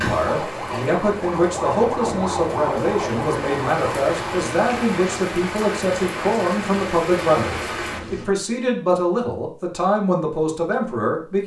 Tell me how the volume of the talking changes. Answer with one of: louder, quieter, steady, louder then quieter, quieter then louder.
steady.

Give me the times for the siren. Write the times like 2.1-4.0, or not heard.
0.2-4.5.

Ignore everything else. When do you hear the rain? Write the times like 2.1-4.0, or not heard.
0.0-8.2.